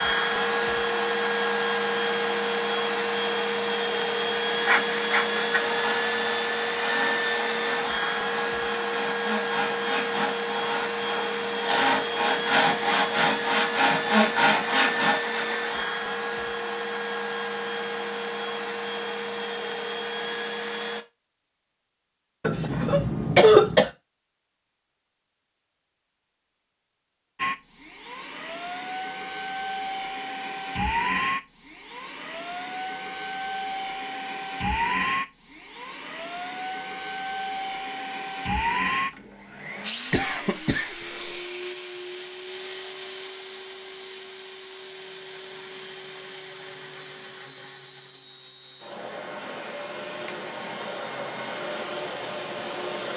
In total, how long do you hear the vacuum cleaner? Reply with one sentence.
The vacuum cleaner can be heard for 47 seconds in total.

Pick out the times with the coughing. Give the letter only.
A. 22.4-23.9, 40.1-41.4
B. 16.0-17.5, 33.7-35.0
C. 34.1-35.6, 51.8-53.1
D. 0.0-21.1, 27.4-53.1
A.